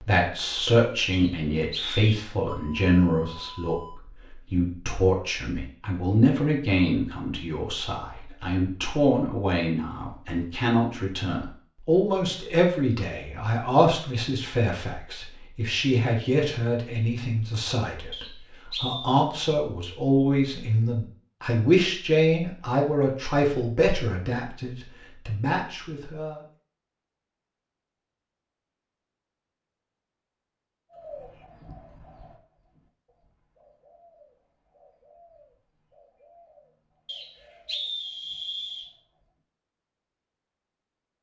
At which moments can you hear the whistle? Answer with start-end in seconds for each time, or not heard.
1.1-2.2, 18.1-19.1, 37.0-38.9.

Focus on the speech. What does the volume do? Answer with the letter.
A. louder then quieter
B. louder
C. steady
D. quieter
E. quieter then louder
C.